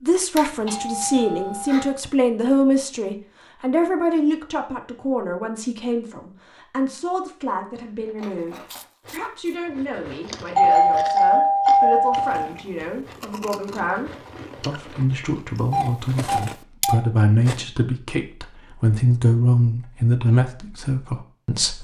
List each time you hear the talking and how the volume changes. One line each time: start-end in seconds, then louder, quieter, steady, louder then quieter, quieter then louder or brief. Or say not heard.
0.0-21.7 quieter then louder.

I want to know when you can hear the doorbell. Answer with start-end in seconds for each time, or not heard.
0.3-1.9, 10.6-12.4, 15.7-17.0.